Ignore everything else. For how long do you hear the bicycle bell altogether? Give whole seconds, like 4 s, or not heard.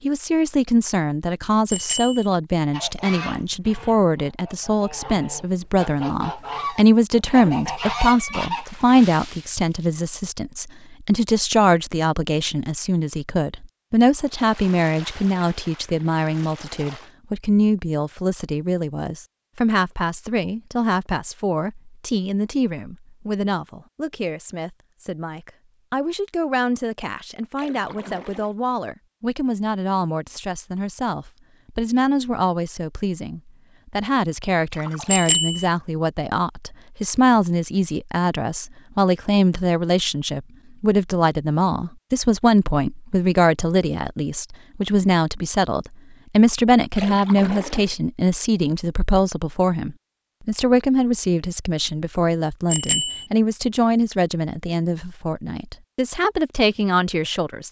2 s.